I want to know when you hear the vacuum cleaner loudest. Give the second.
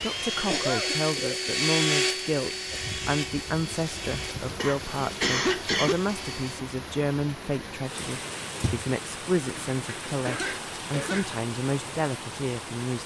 2 s.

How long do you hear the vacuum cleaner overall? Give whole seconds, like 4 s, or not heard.
7 s.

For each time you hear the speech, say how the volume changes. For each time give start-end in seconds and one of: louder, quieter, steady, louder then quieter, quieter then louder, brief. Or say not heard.
0.0-13.0 steady.